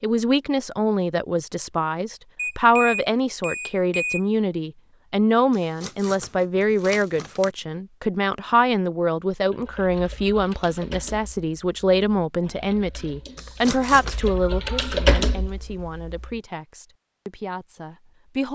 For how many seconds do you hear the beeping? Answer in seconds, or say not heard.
2 s.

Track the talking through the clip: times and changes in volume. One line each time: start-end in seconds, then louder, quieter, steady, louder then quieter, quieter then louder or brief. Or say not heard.
0.0-18.5 quieter.